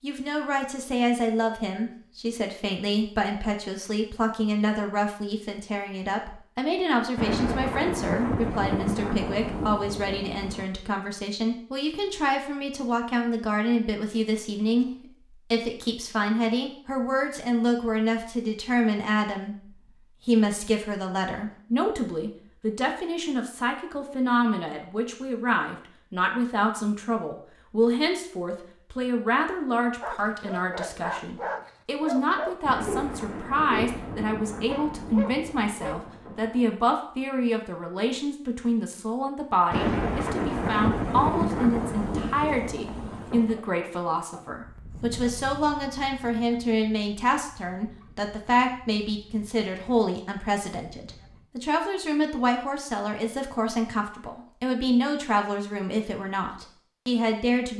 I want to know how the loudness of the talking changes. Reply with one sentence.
The loudness of the talking stays about the same.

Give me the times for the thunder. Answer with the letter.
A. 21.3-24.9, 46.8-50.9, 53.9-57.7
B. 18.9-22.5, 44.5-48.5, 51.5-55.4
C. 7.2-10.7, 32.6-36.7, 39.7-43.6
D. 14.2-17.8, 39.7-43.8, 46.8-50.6
C.